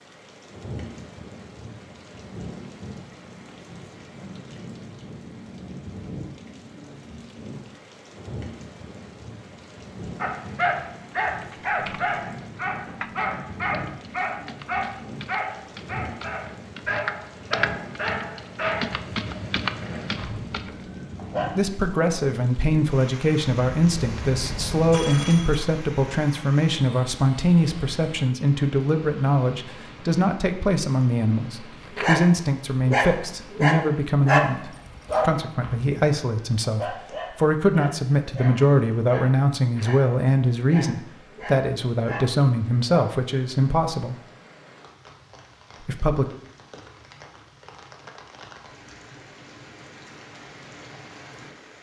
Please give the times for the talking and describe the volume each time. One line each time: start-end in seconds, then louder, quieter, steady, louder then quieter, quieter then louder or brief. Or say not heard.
21.5-44.1 steady
45.8-46.2 brief.